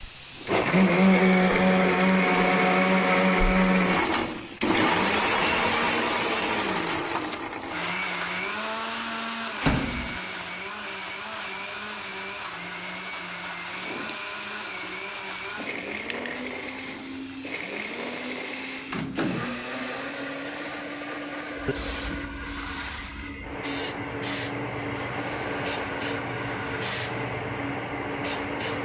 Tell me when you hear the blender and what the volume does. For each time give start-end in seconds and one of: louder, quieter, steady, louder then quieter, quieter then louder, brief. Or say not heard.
0.0-28.7 quieter.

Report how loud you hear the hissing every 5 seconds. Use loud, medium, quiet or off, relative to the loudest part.
medium, medium, medium, medium, medium, loud.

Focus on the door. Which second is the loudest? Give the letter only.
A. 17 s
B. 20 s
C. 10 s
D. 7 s
C.